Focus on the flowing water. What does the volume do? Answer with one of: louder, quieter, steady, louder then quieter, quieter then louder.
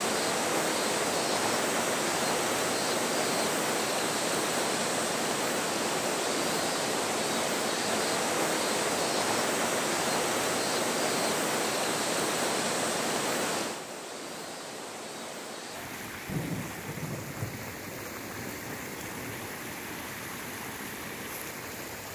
quieter.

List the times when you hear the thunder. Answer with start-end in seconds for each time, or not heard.
16.2-19.5.